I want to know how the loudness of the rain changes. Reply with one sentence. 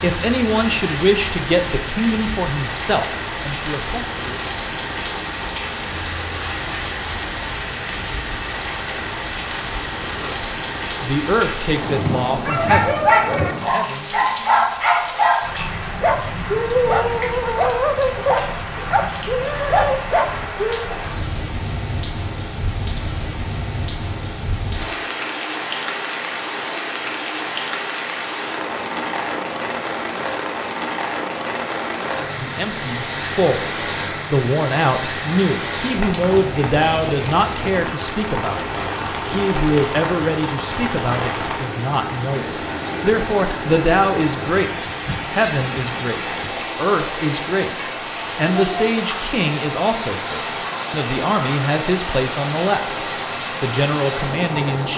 The loudness of the rain stays about the same.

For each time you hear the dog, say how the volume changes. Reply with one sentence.
The dog can be heard from 12.4 to 20.9 s, at a steady volume.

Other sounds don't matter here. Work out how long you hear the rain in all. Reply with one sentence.
You can hear the rain for 55 seconds altogether.